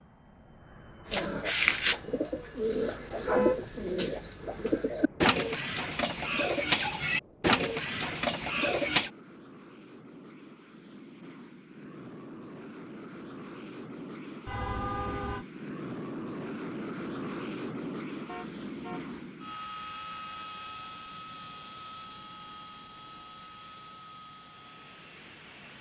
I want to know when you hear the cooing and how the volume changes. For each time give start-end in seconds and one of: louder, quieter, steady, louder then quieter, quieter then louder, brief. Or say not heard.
1.1-9.1 steady.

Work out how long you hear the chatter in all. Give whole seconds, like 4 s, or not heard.
not heard.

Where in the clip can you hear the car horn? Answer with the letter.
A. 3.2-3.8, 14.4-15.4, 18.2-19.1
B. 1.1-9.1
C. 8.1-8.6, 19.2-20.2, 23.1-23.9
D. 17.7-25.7
A.